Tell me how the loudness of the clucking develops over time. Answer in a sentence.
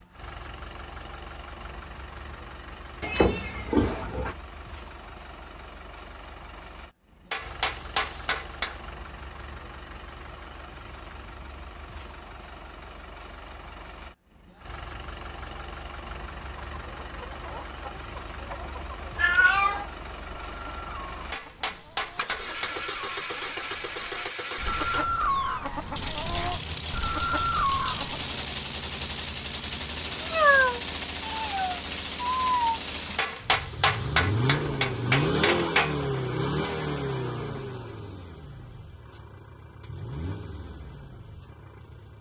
The volume of the clucking goes up.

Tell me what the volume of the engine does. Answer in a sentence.
The volume of the engine goes up.